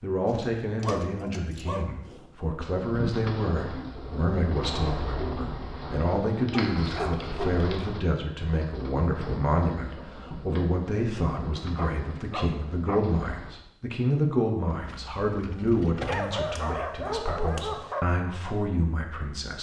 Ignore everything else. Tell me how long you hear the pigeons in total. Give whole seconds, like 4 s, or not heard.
11 s.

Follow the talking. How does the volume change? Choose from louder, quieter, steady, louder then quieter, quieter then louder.
steady.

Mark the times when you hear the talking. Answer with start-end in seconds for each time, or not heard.
0.0-19.5.